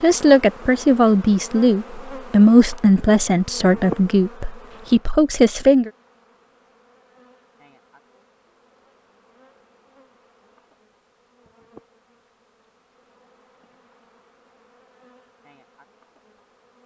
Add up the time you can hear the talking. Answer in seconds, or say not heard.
6 s.